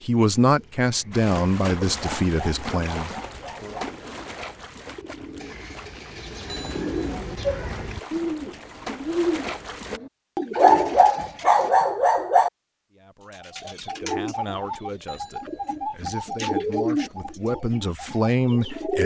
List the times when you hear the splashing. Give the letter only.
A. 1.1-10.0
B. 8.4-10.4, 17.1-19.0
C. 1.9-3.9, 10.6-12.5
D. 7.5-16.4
A.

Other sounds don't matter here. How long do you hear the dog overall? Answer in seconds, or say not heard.
4 s.